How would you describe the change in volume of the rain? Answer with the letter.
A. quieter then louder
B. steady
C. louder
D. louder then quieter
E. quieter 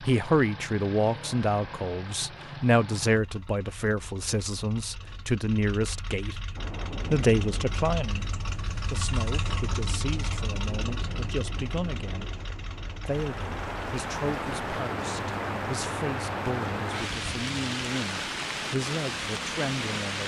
C.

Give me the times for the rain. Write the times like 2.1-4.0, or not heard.
6.5-20.2.